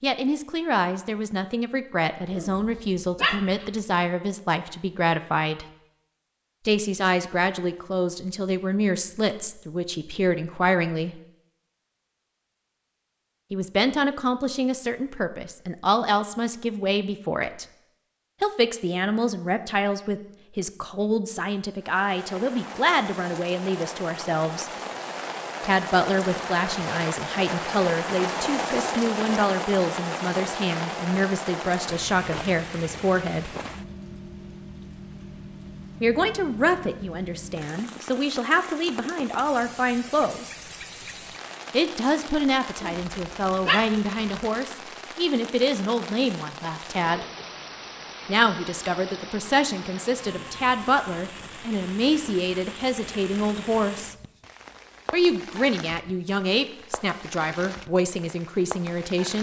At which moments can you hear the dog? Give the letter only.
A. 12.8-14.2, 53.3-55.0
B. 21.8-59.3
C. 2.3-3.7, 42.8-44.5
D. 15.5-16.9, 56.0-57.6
C.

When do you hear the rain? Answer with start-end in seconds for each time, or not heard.
21.8-59.3.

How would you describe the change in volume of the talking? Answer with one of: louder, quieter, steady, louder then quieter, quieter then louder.
steady.